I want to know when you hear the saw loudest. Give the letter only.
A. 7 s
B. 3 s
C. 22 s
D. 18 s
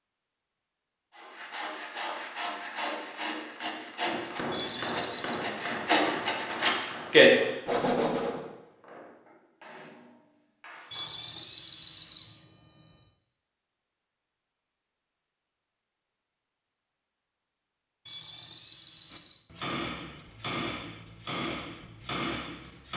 A.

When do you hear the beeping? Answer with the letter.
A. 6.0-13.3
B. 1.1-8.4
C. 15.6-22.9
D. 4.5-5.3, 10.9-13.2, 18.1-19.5
D.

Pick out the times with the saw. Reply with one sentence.
The saw can be heard from 1.1 to 8.4 s.